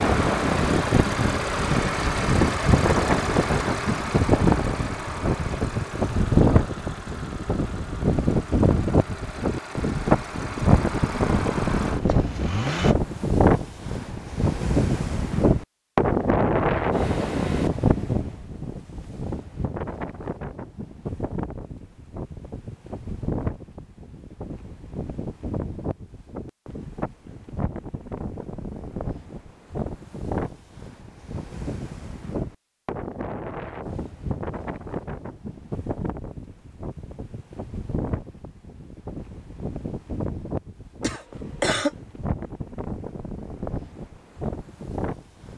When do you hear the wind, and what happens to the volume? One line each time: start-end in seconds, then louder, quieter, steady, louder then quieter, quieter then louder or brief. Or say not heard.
0.0-45.5 quieter.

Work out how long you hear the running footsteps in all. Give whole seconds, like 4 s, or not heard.
not heard.